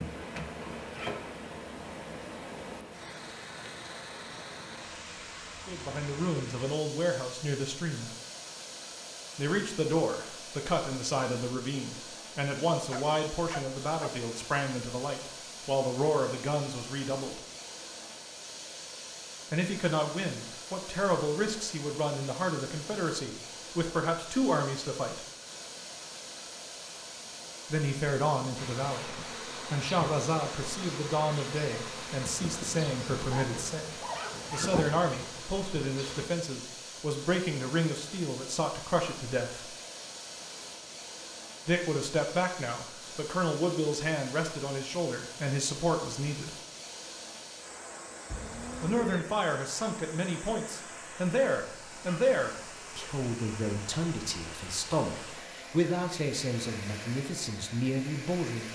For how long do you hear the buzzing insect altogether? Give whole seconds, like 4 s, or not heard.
9 s.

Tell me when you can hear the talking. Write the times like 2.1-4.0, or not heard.
5.7-8.1, 9.3-17.4, 19.5-25.2, 27.7-39.7, 41.6-46.5, 48.8-58.7.